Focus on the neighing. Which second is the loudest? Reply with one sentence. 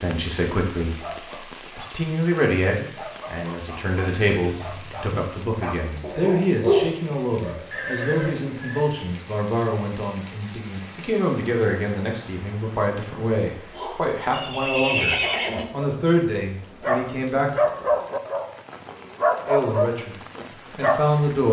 The loudest moment of the neighing is at 15 seconds.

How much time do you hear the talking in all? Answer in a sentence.
The talking can be heard for 19 seconds in total.